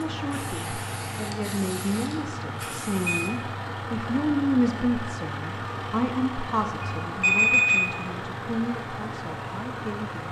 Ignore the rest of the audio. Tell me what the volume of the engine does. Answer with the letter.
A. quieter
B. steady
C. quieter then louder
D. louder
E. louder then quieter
B.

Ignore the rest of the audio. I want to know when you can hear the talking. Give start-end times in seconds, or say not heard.
0.0-10.2.